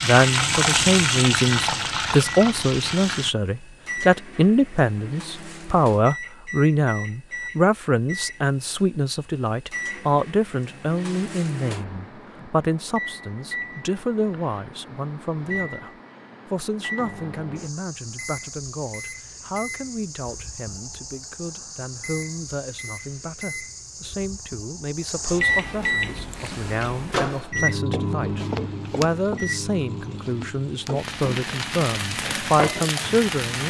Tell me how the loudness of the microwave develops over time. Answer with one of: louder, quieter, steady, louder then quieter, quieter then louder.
louder.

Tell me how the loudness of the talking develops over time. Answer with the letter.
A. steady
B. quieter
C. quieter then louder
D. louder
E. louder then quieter
C.